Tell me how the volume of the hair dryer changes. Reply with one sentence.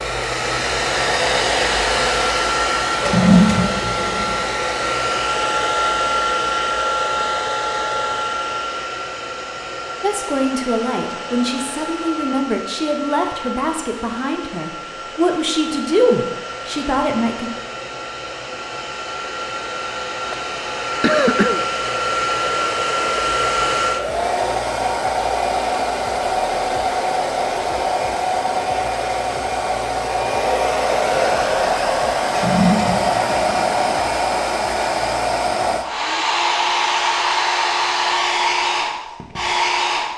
The volume of the hair dryer goes down, then up.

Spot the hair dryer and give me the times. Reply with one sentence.
You can hear the hair dryer from 0.0 to 40.1 s.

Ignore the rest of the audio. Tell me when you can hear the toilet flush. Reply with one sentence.
The toilet flush can be heard from 3.0 to 4.3 s and from 32.2 to 33.8 s.